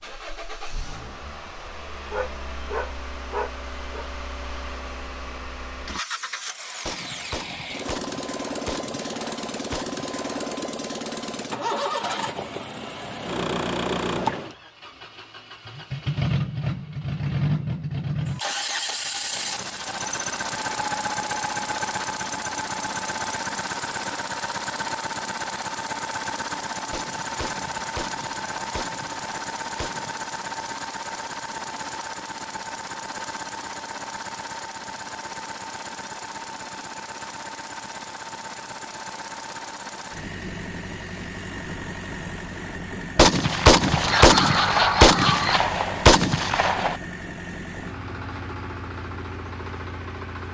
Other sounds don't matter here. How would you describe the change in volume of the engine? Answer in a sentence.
The loudness of the engine goes up, then down.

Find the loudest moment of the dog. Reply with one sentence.
The volume of the dog peaks at 45 seconds.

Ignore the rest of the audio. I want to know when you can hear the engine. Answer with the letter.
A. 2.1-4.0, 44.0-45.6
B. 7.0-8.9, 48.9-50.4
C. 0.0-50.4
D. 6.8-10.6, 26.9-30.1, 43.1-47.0
C.